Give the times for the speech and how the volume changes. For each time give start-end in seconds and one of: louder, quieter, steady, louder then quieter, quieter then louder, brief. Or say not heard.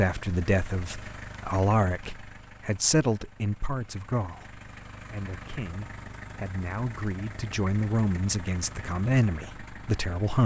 0.0-10.4 quieter then louder.